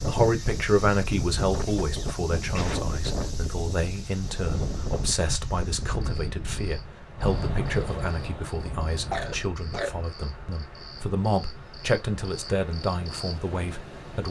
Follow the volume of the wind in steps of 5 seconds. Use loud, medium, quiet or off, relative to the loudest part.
loud, loud, quiet.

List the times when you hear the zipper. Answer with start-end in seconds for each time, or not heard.
not heard.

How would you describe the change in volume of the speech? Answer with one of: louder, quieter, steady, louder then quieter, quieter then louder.
quieter then louder.